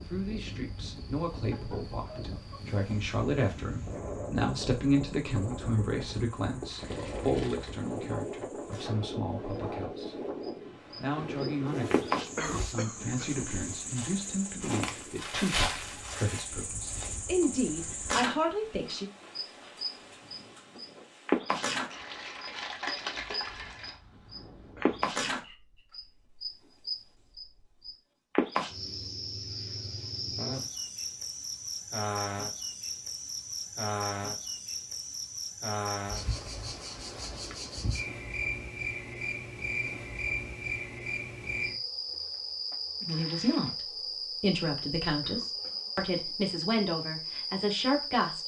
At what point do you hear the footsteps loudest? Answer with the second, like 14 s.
16 s.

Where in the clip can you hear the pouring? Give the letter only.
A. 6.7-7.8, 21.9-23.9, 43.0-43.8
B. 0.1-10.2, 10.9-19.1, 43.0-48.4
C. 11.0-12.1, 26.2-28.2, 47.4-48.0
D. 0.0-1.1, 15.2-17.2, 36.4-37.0
A.